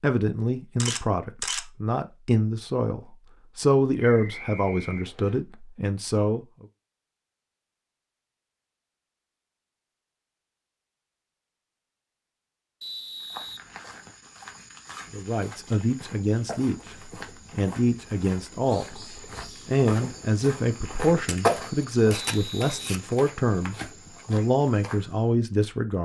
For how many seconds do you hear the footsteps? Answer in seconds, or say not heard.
12 s.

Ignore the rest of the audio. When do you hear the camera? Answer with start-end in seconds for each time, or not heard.
0.8-1.6, 21.2-23.0.